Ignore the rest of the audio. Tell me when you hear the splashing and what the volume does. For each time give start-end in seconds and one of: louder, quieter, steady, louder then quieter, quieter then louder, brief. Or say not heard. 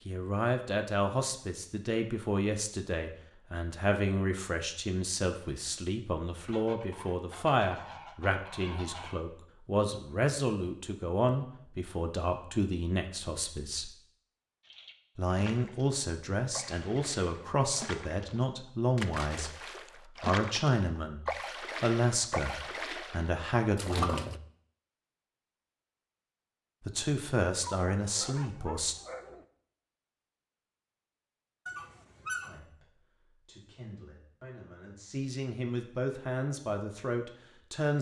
14.6-24.4 louder.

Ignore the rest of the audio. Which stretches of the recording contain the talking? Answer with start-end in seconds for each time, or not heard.
0.1-13.9, 15.2-19.5, 20.2-24.3, 26.9-28.9, 32.5-37.9.